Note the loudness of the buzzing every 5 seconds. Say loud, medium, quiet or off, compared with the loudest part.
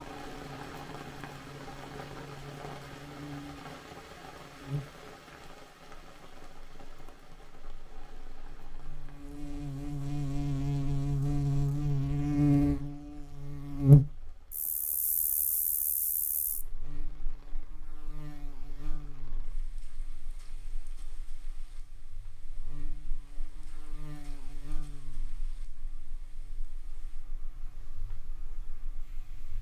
quiet, quiet, loud, quiet, quiet, quiet.